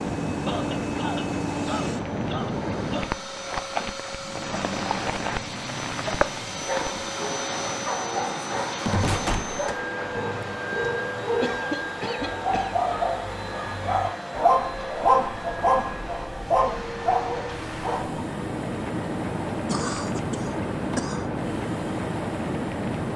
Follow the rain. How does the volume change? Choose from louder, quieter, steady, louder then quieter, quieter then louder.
quieter then louder.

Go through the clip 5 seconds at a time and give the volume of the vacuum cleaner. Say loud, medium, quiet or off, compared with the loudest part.
loud, loud, loud, medium, medium.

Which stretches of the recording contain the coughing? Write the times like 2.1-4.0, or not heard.
0.5-3.1, 11.4-12.8, 19.6-21.3.